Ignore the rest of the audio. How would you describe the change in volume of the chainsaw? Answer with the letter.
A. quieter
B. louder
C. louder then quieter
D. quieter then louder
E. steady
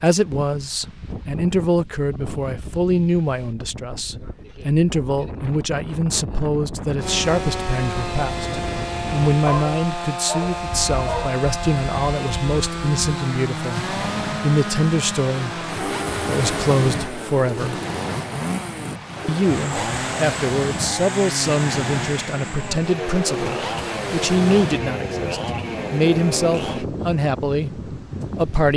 E.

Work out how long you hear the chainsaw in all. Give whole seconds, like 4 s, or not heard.
20 s.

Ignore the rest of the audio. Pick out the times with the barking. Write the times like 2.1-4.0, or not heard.
9.4-11.4.